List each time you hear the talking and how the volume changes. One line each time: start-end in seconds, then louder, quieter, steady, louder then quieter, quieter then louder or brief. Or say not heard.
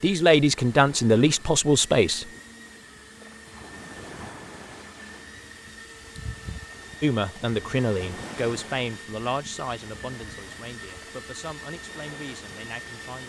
0.0-2.2 brief
7.0-13.2 quieter.